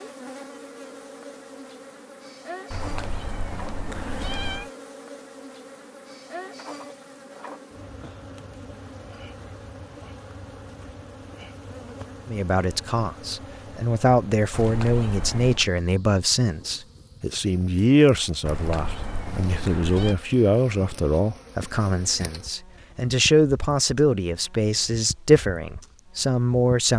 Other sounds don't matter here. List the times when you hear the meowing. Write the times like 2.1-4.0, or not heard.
2.7-4.7, 14.5-15.7, 18.4-20.1.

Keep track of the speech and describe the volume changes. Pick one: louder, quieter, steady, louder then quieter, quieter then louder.
steady.